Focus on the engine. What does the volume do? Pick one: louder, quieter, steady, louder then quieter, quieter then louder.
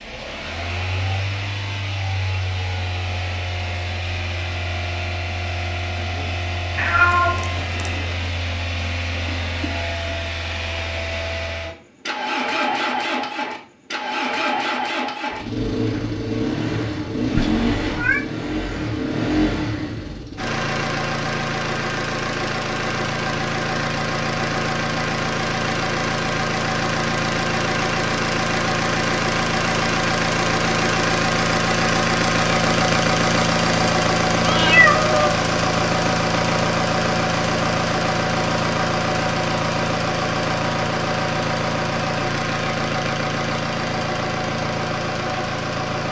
louder.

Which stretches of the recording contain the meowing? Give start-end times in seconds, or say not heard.
6.8-8.0, 17.4-18.2, 34.4-35.4.